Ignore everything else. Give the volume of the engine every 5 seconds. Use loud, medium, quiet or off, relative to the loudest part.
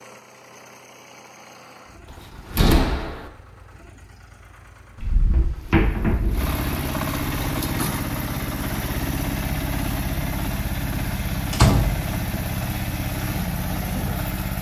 quiet, loud, loud.